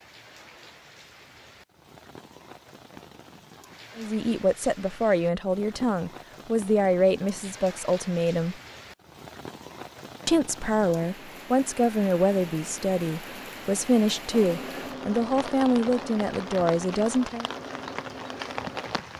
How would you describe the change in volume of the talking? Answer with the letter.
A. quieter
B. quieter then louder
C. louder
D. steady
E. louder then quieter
D.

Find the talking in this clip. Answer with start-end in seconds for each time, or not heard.
4.0-8.6, 10.2-17.5.